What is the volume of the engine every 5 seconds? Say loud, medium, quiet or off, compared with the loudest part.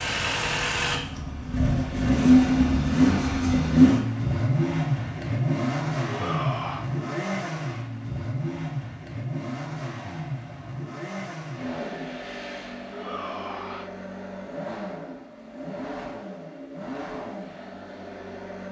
loud, medium, quiet, quiet.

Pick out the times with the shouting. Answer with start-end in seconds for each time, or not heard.
6.0-6.8, 12.9-13.9.